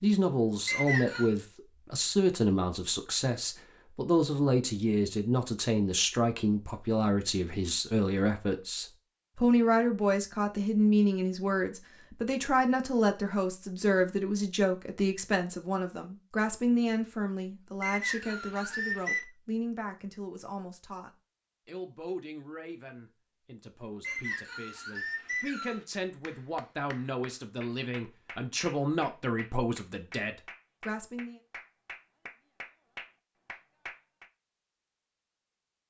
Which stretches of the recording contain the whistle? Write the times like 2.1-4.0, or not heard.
0.7-1.3, 17.8-19.2, 24.0-25.9.